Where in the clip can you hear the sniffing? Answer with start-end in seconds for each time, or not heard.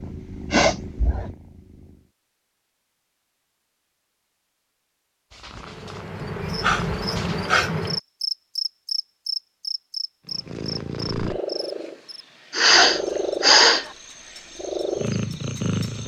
0.5-1.2, 6.2-7.7, 12.5-13.8.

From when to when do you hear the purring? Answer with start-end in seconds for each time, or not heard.
0.0-2.1, 5.3-7.5, 10.2-16.0.